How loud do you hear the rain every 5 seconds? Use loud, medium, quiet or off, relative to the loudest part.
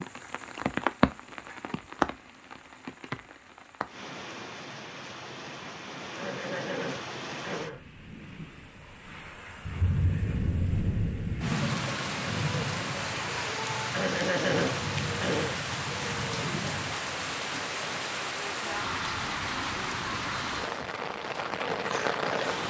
loud, medium, loud, loud, loud.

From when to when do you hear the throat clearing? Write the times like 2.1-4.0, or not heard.
6.2-7.8, 13.9-15.6.